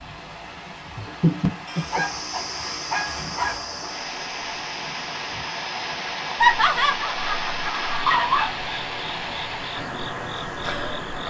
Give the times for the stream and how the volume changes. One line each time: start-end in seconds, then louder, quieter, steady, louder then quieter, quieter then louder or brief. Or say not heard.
0.0-11.2 louder.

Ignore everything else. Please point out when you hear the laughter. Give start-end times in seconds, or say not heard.
0.9-2.0, 6.4-8.1.